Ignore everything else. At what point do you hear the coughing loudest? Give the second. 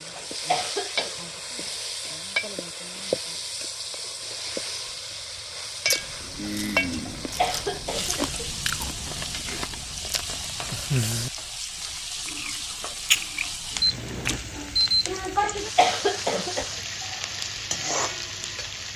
16 s.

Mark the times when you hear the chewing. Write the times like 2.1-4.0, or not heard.
5.8-14.4.